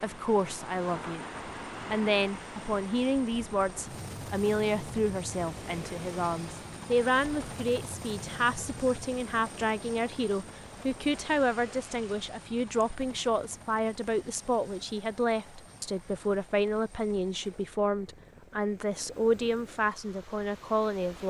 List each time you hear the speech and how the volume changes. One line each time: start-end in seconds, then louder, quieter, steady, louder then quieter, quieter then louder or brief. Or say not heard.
0.0-1.2 brief
1.9-21.2 steady.